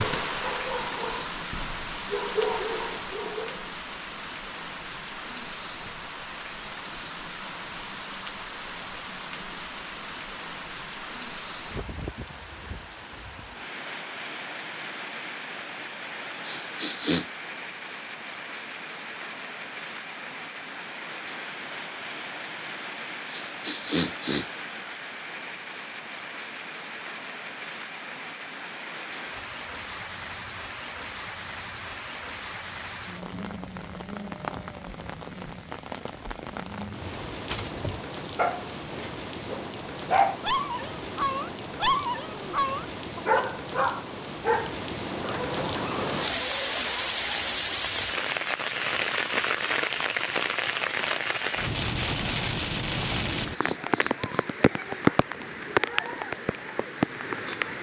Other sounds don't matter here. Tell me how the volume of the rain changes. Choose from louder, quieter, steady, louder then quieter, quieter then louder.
louder.